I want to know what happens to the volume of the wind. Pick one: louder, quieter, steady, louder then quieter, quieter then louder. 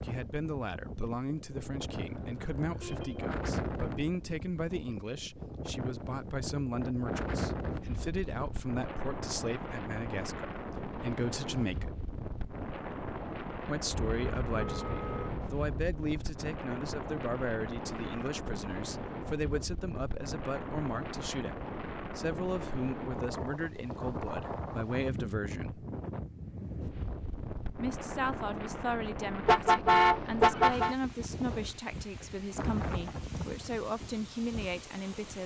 steady.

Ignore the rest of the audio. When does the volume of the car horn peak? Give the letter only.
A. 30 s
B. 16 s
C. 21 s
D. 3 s
A.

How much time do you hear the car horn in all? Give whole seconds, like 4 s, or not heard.
5 s.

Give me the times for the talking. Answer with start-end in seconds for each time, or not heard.
0.0-11.9, 13.7-25.9, 27.8-35.4.